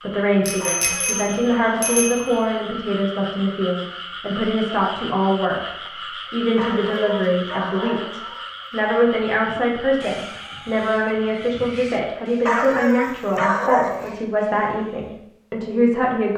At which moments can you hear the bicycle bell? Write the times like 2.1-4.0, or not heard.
0.5-2.5.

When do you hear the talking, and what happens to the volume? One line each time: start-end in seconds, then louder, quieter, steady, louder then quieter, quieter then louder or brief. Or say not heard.
0.0-16.3 steady.